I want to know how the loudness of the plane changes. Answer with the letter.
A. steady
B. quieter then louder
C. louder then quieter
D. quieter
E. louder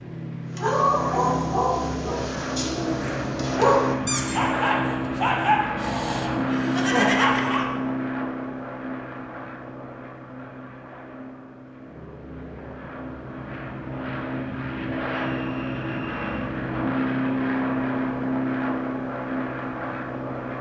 B.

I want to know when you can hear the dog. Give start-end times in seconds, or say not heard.
0.6-7.7.